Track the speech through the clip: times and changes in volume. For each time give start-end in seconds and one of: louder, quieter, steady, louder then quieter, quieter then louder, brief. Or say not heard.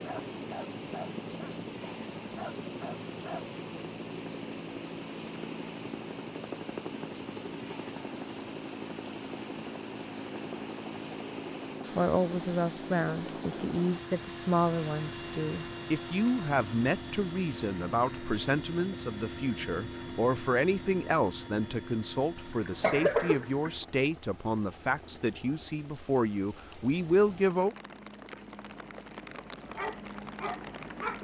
11.9-27.8 steady.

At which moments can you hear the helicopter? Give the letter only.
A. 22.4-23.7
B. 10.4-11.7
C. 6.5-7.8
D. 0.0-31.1
D.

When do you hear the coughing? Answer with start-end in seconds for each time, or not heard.
22.4-23.7.